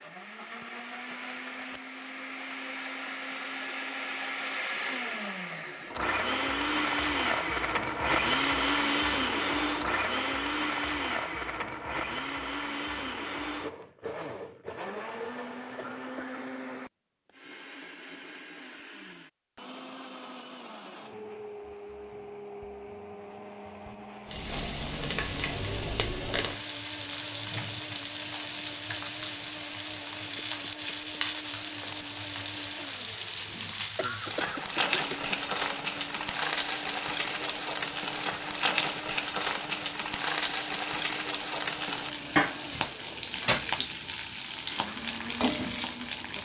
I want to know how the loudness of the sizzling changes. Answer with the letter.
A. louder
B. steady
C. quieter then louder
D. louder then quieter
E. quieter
B.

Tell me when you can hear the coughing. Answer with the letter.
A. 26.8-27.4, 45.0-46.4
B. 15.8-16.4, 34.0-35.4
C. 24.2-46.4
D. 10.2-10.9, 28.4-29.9
B.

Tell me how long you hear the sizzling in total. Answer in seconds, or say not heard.
22 s.